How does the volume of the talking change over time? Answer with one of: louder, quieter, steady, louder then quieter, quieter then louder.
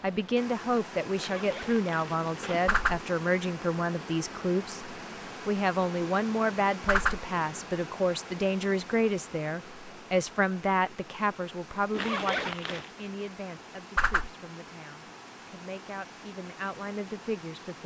quieter.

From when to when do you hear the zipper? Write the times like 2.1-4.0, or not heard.
1.1-2.8, 11.9-12.9.